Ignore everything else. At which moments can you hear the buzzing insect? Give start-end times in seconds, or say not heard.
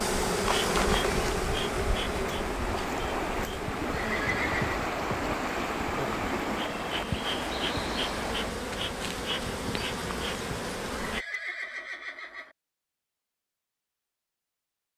0.0-11.2.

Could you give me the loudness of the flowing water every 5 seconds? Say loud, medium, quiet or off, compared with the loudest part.
loud, loud, off.